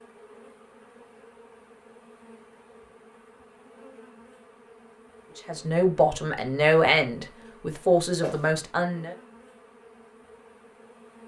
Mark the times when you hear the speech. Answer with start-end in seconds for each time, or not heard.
5.3-9.2.